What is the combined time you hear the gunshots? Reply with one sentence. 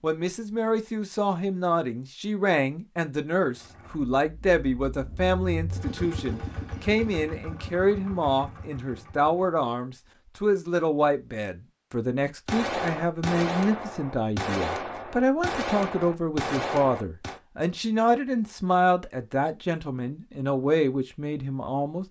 You can hear the gunshots for 5 seconds altogether.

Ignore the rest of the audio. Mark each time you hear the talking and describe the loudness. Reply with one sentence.
The talking can be heard from 0.0 to 22.0 s, at a steady volume.